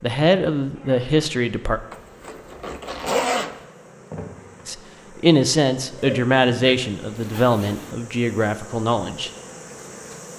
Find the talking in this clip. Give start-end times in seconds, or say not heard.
0.0-1.8, 4.7-9.3.